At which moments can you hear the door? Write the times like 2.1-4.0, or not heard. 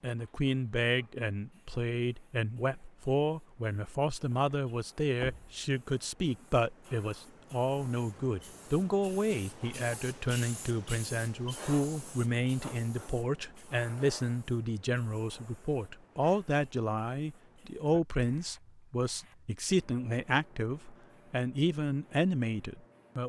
5.2-5.6.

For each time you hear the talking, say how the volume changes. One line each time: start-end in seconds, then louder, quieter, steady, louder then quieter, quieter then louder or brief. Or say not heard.
0.0-23.2 steady.